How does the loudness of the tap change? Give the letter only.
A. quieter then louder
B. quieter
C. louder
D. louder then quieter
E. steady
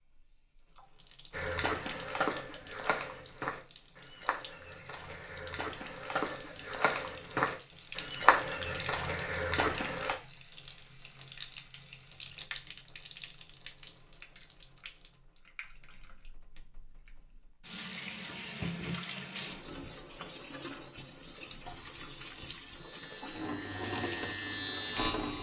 C.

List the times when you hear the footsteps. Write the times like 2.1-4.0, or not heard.
1.3-10.2.